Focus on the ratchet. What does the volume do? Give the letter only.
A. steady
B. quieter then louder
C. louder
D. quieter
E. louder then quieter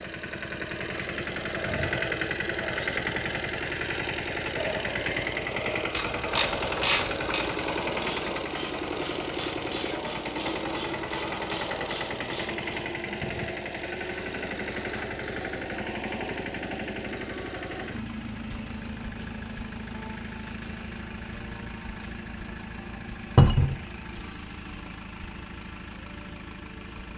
D.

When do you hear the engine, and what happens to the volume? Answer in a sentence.
You can hear the engine from 0.0 to 27.1 s, getting quieter.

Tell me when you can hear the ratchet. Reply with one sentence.
The ratchet can be heard from 5.9 to 12.7 s.